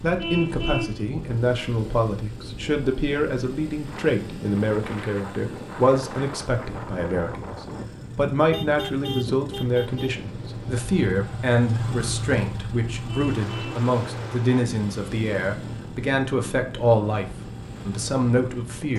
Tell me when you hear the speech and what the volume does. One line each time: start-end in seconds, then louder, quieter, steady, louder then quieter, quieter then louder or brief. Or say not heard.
0.0-17.2 steady
17.9-18.9 brief.